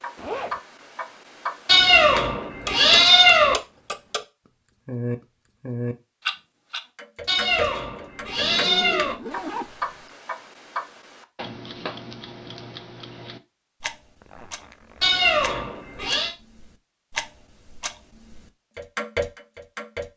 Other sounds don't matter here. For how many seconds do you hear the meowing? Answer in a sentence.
You can hear the meowing for 5 seconds altogether.